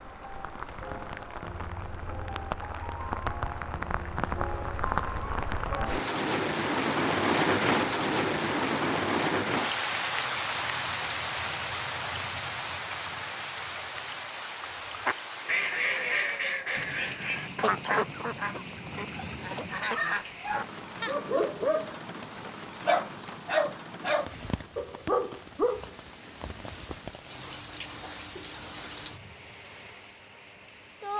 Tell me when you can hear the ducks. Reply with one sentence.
The ducks can be heard from 15.0 to 20.3 s.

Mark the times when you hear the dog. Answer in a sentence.
The dog can be heard from 19.8 to 22.0 s and from 22.9 to 25.9 s.